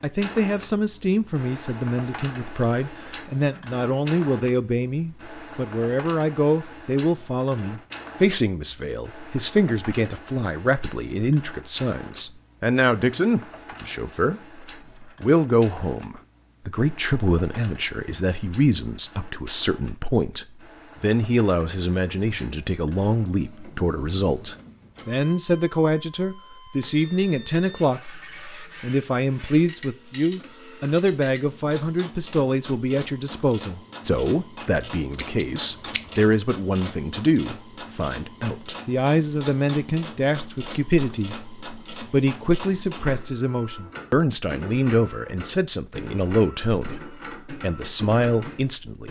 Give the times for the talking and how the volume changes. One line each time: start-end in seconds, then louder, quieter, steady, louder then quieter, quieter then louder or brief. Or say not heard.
0.0-14.4 steady
15.0-49.0 steady.